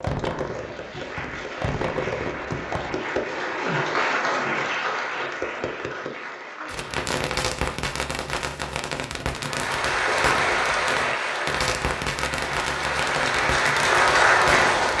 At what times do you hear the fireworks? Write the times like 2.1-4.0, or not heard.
0.0-3.0, 6.7-14.8.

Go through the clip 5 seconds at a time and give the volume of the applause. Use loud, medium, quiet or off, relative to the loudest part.
medium, medium, loud.